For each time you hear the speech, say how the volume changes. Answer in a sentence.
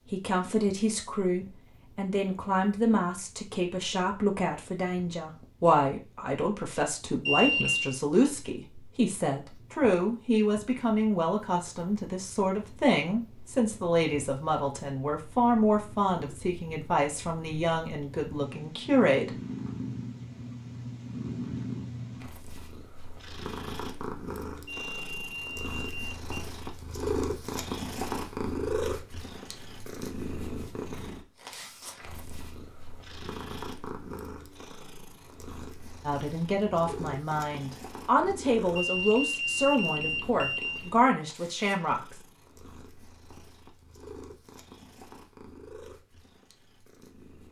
You can hear the speech from 0.0 to 19.4 s, at a steady volume; and from 36.0 to 42.1 s, at a steady volume.